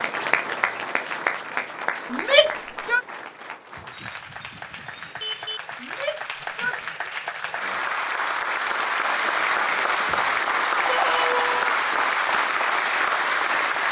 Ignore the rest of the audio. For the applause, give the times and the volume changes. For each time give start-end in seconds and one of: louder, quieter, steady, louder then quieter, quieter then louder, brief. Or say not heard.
0.0-13.8 quieter then louder.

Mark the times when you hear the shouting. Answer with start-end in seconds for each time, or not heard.
2.1-3.0, 5.8-6.8, 10.8-11.7.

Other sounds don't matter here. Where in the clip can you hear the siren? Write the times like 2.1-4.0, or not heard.
not heard.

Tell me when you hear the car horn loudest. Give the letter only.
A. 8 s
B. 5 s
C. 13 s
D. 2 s
B.